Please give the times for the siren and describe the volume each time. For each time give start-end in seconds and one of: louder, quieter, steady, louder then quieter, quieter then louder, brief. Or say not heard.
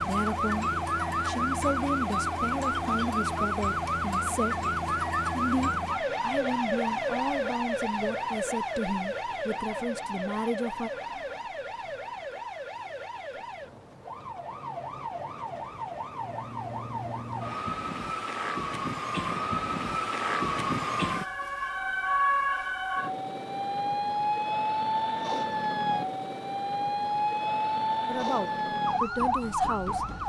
0.0-30.2 quieter then louder.